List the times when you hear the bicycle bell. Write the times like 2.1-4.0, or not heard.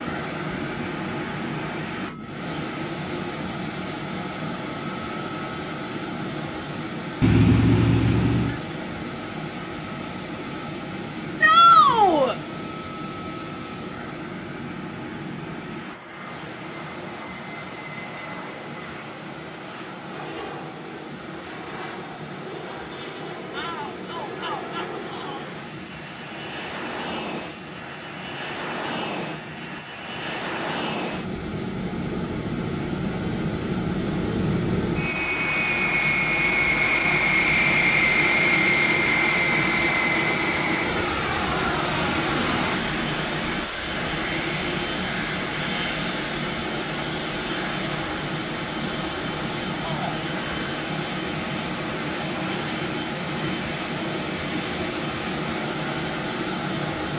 7.2-8.7.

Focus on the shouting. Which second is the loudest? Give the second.
12 s.